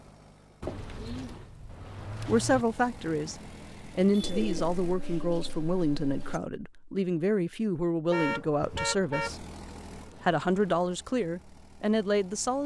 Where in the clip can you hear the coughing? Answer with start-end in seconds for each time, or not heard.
not heard.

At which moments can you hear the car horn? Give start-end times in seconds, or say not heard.
3.0-4.4, 8.1-9.4.